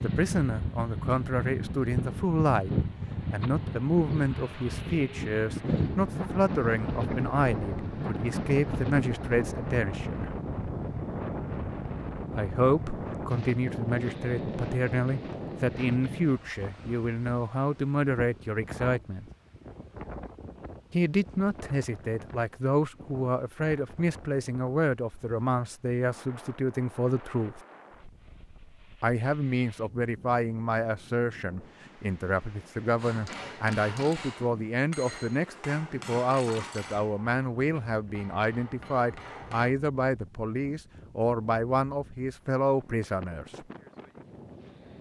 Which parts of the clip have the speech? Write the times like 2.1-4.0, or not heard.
0.0-2.7, 3.3-10.3, 12.3-19.2, 20.9-27.6, 29.0-43.6.